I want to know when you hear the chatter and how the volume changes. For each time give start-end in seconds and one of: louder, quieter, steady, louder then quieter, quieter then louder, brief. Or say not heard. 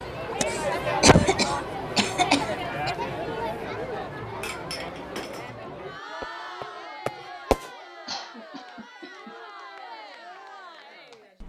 0.0-11.4 quieter.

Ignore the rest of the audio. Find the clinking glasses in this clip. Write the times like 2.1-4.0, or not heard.
4.4-5.5.